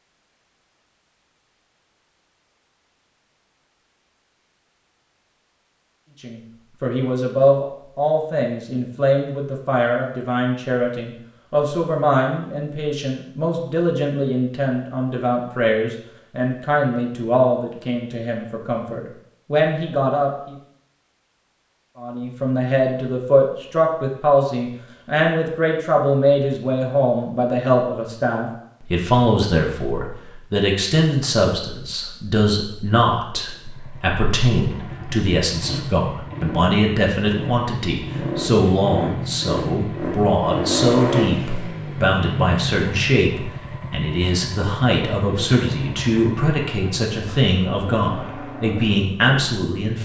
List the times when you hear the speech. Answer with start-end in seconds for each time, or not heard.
6.2-20.6, 22.0-50.0.